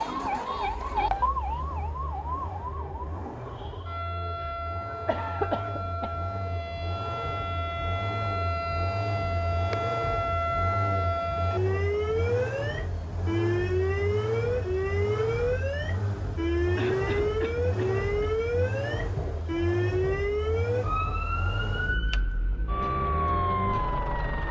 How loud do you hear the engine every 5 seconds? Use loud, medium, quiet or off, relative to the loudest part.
medium, loud, loud, loud, loud.